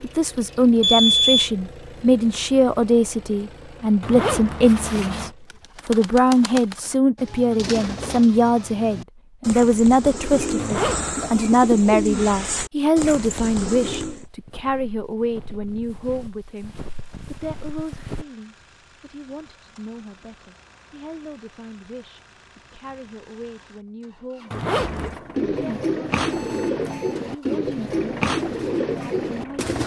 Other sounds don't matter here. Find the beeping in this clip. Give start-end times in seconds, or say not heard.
0.8-1.5, 26.3-27.2.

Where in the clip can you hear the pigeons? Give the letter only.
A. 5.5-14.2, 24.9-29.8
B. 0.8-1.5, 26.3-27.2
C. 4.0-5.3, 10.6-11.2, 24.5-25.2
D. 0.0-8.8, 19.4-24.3
A.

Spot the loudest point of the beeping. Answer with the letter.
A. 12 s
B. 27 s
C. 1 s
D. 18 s
C.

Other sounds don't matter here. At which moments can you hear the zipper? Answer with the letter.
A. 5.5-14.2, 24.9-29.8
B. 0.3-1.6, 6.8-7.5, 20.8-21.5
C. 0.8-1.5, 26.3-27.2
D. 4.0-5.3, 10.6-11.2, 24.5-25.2
D.